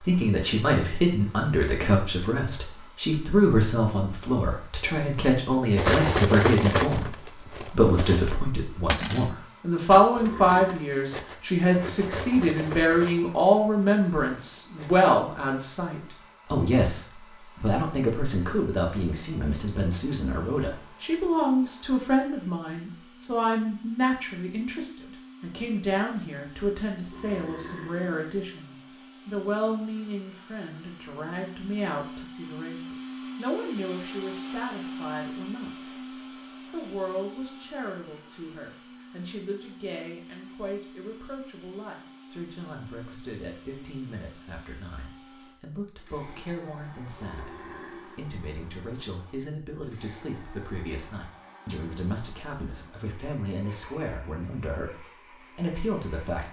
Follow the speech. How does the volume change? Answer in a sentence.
The loudness of the speech goes down.